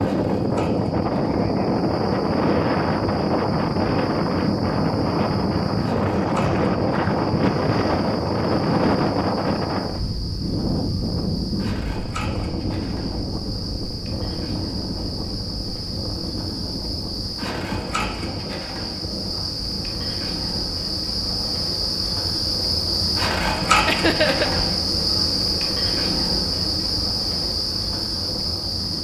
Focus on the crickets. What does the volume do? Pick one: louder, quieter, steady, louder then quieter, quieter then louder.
louder.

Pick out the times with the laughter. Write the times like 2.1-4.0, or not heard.
23.9-24.5.